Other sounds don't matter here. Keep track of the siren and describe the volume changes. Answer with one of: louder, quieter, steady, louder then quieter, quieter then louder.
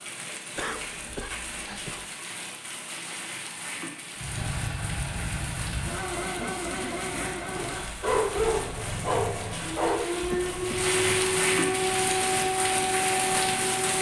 steady.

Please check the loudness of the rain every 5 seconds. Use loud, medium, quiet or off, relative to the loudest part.
medium, medium, loud.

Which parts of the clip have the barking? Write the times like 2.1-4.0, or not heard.
7.5-10.1.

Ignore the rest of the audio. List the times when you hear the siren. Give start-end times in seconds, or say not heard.
9.8-13.9.